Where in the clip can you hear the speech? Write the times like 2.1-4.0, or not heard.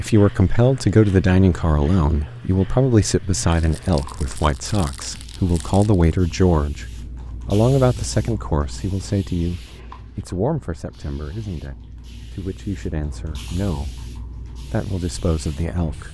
0.0-6.8, 7.5-14.1, 14.7-16.0.